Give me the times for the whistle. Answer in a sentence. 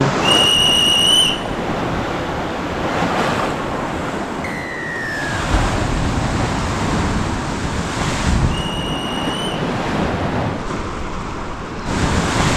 You can hear the whistle from 0.2 to 1.4 s, from 4.4 to 5.4 s and from 8.6 to 9.6 s.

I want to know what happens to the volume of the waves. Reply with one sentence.
The volume of the waves stays about the same.